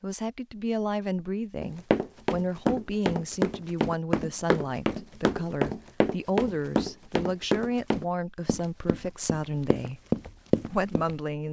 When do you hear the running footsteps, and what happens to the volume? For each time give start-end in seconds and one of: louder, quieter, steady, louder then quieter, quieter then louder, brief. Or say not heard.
1.6-11.2 steady.